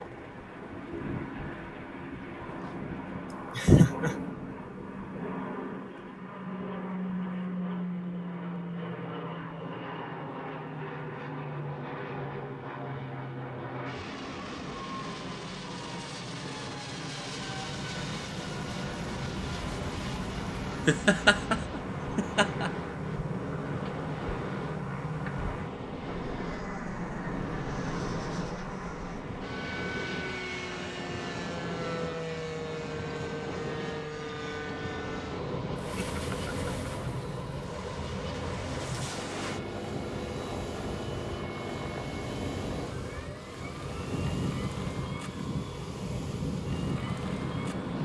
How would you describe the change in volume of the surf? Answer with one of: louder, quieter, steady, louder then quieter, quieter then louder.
steady.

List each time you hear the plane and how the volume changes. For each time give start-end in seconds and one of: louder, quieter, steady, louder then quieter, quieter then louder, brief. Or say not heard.
0.0-48.0 steady.